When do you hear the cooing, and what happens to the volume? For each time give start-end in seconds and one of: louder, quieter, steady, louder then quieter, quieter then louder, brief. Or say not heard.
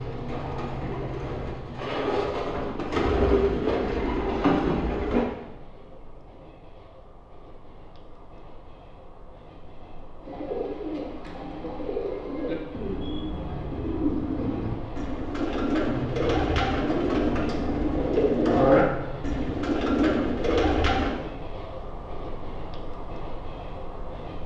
0.0-5.2 louder
10.2-21.1 louder.